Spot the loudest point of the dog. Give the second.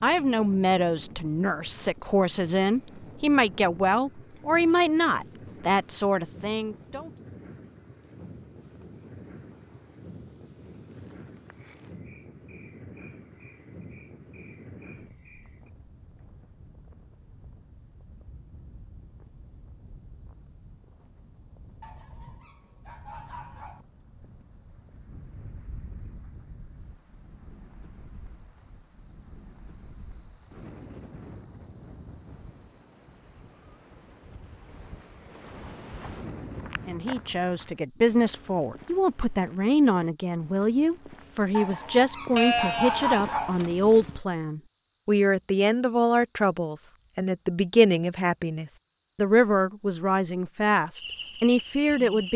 43 s.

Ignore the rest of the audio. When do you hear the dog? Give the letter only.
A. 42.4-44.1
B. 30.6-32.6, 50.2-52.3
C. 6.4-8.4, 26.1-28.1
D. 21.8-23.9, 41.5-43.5
D.